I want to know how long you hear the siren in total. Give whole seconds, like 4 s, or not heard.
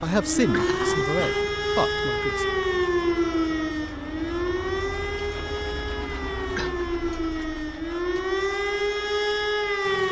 10 s.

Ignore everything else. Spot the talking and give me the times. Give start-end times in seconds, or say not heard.
0.0-2.5.